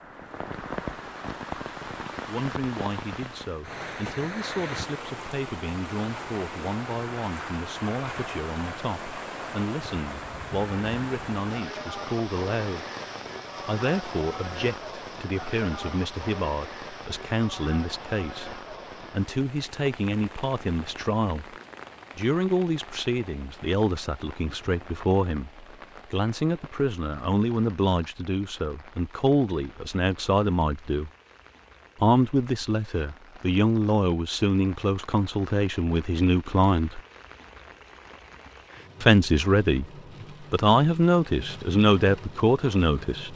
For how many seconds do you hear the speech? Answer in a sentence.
You can hear the speech for 36 seconds altogether.